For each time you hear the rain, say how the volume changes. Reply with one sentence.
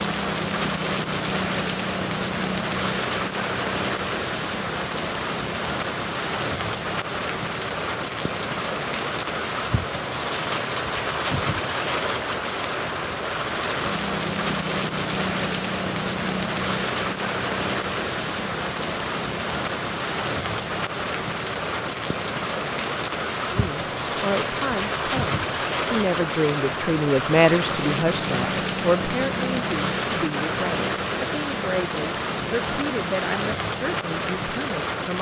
The rain can be heard from 0.0 to 35.1 s, at a steady volume.